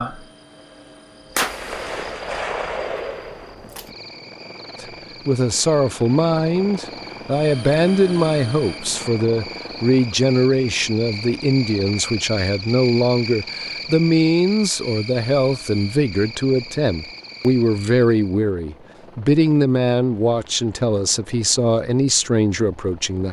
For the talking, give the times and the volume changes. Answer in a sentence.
The talking can be heard from 4.8 to 23.2 s, at a steady volume.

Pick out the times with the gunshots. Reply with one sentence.
The gunshots can be heard from 1.4 to 3.9 s.